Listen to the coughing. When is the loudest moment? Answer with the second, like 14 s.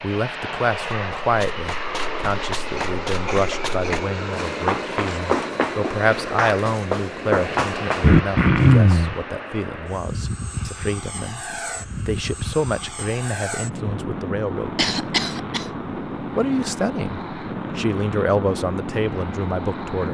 9 s.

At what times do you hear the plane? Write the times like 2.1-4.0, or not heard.
0.0-20.0.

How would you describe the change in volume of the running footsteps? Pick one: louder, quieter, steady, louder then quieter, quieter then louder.
louder.